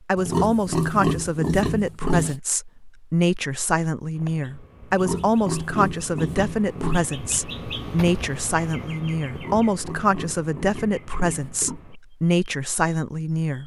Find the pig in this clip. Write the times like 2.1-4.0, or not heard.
0.1-2.4, 4.9-7.0, 9.2-11.8.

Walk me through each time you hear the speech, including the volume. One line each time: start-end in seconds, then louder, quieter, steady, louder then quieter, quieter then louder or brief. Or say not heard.
0.1-13.6 steady.